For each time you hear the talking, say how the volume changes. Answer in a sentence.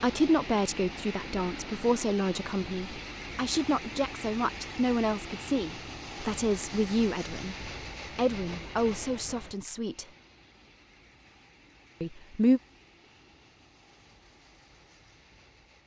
You can hear the talking from 0.0 to 10.1 s, at a steady volume; and briefly from 12.0 to 12.6 s.